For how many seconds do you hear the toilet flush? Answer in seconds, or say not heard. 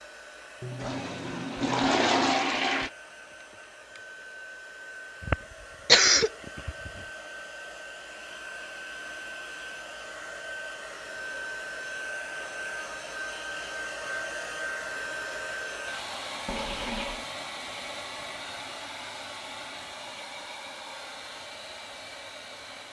3 s.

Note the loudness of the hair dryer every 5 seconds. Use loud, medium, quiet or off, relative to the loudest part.
medium, medium, loud, loud, medium.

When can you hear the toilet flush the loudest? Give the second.
2 s.